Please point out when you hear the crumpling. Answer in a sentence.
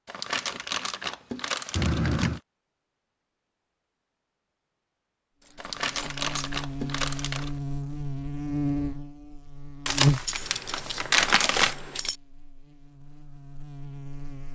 You can hear the crumpling from 0.1 to 2.4 s, from 5.5 to 7.5 s and from 9.8 to 11.8 s.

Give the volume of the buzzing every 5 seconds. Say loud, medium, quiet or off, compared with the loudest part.
off, loud, loud.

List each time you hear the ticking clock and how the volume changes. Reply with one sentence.
The ticking clock can't be heard in this clip.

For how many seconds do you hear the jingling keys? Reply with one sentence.
You can hear the jingling keys for 4 seconds altogether.